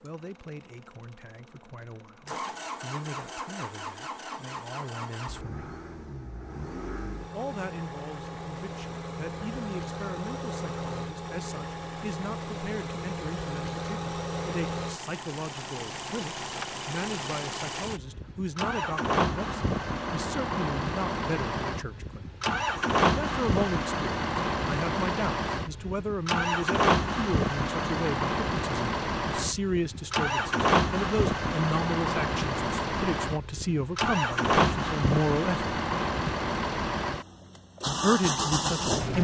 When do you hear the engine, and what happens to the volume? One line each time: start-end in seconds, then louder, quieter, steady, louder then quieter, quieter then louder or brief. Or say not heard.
0.1-39.1 louder.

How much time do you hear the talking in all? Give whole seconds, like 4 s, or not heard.
34 s.